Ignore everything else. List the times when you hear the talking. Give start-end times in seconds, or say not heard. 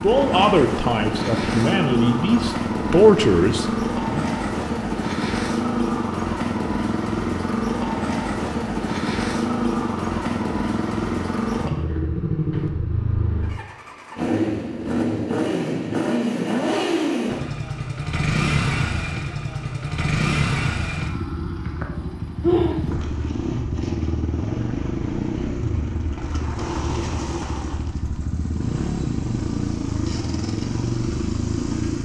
0.0-4.2.